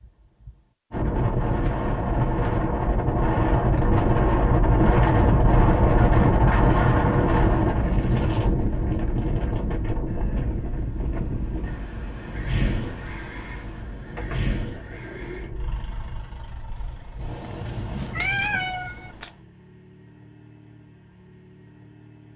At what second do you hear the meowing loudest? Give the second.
18 s.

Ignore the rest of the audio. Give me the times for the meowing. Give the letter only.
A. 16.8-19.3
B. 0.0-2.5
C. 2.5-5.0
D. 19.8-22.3
A.